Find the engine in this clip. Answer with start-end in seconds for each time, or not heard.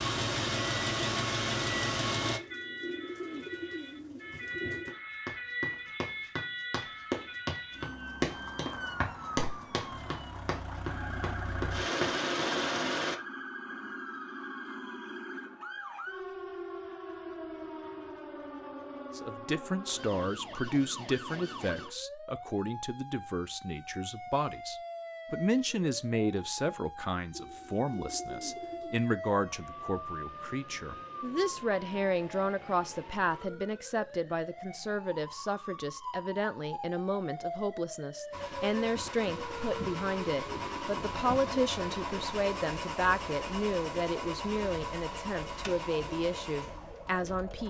0.0-2.4, 9.9-13.2, 38.3-47.6.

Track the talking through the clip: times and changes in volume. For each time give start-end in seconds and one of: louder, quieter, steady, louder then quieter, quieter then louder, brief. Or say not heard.
19.1-47.6 steady.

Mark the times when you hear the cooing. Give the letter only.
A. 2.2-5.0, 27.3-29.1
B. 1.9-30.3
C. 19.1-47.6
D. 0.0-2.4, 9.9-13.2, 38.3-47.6
A.